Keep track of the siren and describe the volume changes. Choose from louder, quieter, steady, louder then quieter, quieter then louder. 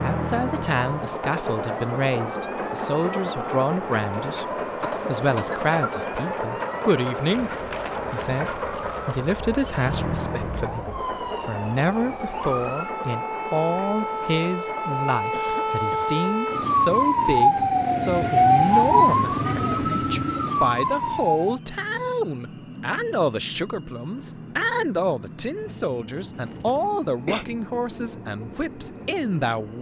louder.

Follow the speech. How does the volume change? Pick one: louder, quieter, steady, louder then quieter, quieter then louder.
steady.